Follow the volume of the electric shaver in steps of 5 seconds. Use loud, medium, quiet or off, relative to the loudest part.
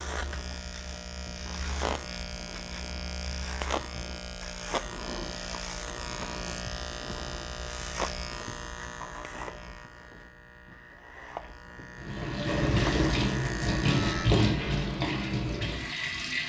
loud, loud, loud, off.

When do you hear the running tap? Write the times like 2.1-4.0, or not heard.
12.1-16.4.